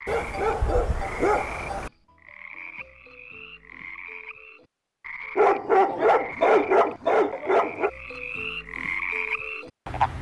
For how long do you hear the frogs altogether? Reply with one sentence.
The frogs can be heard for 10 seconds in total.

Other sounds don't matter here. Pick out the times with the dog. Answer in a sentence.
The dog can be heard from 0.1 to 1.9 s and from 5.3 to 7.9 s.